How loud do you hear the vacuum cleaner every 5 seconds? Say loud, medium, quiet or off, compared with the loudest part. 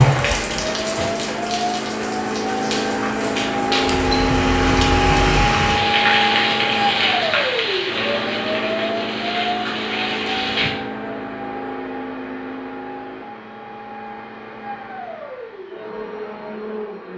loud, loud, medium, medium.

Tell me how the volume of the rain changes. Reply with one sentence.
The volume of the rain goes up, then down.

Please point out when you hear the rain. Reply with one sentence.
The rain can be heard from 0.0 to 10.7 s.